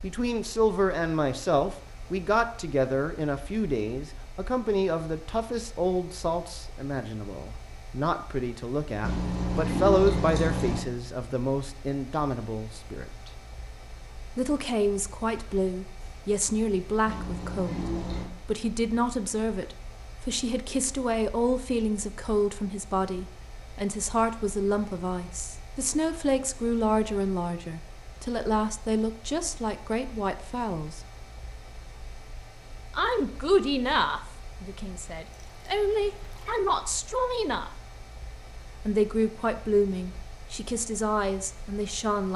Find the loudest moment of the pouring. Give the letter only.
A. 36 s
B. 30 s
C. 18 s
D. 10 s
D.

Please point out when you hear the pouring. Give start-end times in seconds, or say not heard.
9.0-10.8, 17.1-18.3, 35.3-36.6.